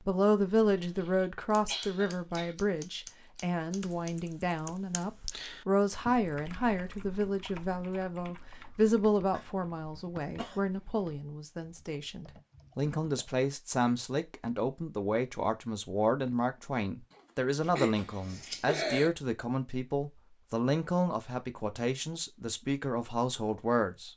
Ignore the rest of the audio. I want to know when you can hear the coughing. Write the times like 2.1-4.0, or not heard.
0.7-2.5, 9.3-11.2, 17.1-19.1.